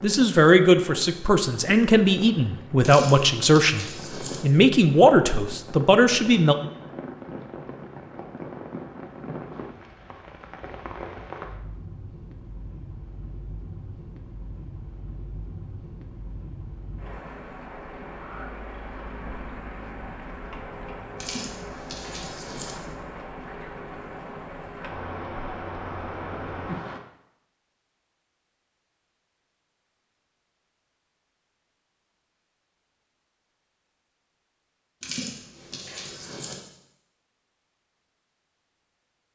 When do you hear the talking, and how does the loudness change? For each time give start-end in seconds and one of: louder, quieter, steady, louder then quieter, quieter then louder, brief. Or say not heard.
0.0-6.5 steady.